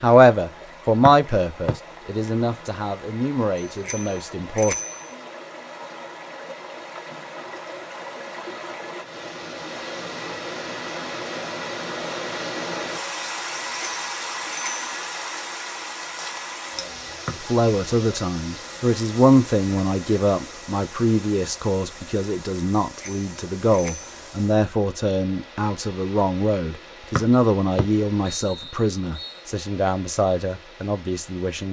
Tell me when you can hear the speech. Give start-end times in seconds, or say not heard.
0.0-4.8, 17.4-31.6.